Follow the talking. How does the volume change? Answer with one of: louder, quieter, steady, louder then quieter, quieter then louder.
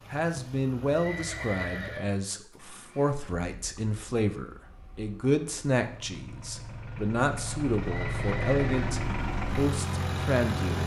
steady.